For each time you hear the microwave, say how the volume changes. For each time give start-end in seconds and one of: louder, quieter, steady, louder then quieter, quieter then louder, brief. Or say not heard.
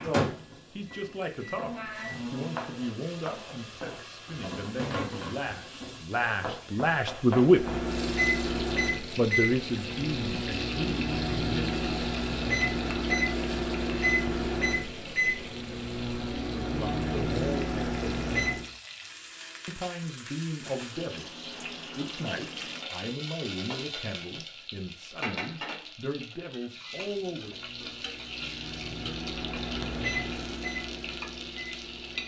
0.0-2.6 brief
7.5-18.7 steady
27.1-32.2 louder then quieter.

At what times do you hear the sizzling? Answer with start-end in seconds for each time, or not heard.
0.0-32.2.